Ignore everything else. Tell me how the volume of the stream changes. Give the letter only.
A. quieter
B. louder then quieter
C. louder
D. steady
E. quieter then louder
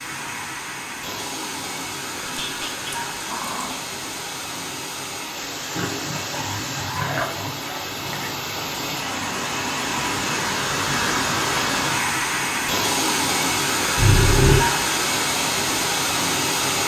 C.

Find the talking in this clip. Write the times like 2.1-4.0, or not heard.
not heard.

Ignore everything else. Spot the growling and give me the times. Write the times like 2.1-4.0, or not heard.
2.2-3.8, 5.8-8.3, 13.9-14.7.